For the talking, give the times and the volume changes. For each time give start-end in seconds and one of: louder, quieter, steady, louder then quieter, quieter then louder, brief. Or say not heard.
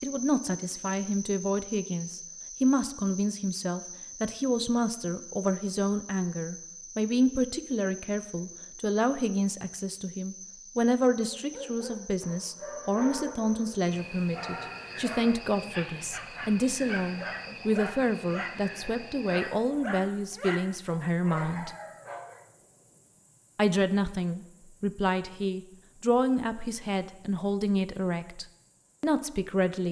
0.0-21.7 steady
23.6-29.8 steady.